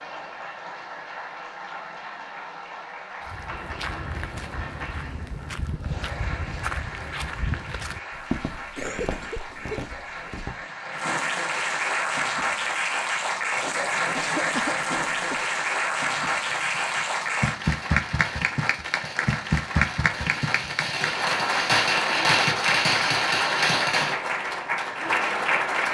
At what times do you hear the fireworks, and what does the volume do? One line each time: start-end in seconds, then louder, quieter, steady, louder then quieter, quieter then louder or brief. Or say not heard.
16.1-24.1 louder.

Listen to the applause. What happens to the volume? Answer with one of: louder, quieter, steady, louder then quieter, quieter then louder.
louder.